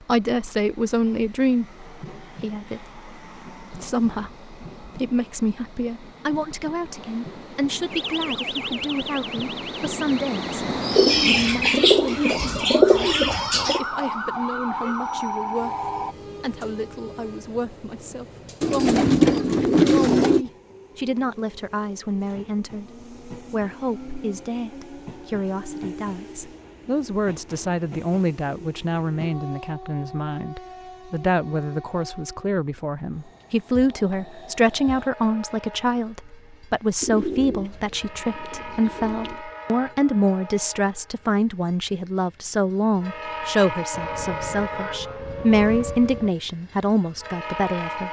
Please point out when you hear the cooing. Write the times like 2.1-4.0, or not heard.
10.9-13.8, 18.6-20.4, 37.0-39.4.